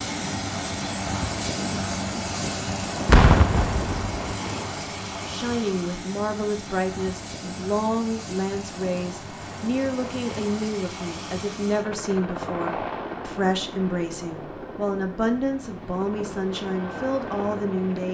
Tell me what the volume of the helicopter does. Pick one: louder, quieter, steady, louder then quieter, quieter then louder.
quieter.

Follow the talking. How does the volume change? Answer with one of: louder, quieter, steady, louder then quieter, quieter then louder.
steady.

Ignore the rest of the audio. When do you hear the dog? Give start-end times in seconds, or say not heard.
not heard.